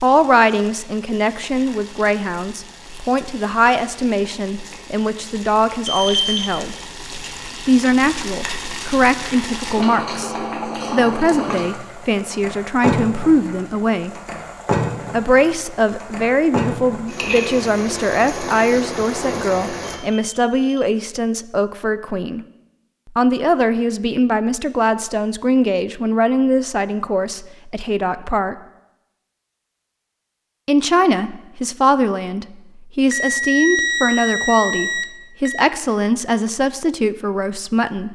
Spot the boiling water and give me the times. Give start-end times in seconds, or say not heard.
0.0-20.0.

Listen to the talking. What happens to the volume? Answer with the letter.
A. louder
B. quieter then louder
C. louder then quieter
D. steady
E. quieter
D.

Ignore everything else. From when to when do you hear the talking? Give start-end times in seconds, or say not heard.
0.0-6.8, 7.7-14.2, 15.1-22.4, 23.1-28.6, 30.6-38.1.